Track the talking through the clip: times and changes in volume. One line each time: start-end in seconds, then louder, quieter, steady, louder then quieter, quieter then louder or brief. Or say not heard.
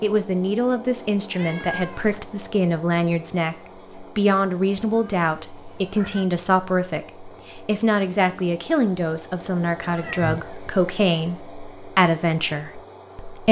0.0-13.4 steady.